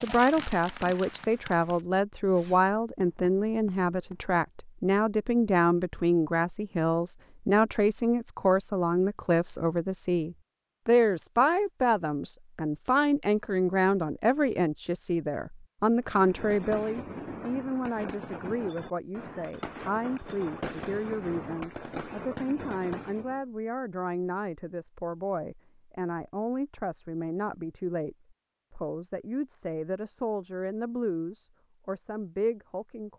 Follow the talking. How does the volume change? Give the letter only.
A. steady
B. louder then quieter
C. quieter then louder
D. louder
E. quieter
E.